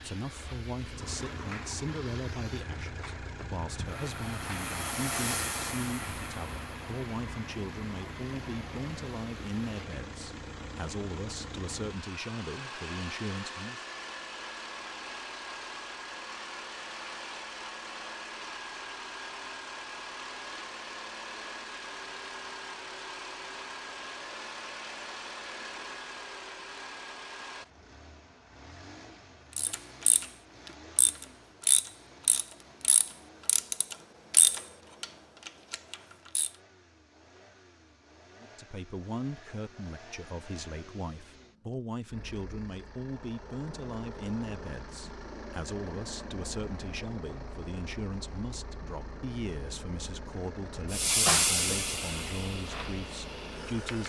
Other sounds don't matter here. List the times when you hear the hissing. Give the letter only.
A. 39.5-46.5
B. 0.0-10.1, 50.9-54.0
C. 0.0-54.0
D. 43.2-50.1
B.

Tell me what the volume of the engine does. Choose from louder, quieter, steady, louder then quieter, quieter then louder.
quieter then louder.